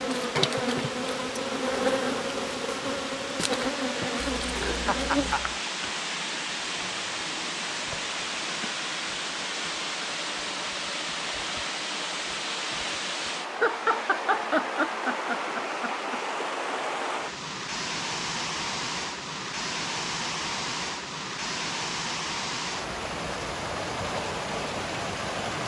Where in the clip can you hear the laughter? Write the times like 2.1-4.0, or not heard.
4.2-5.6, 13.5-16.2.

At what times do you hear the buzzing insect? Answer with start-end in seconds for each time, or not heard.
0.0-5.4.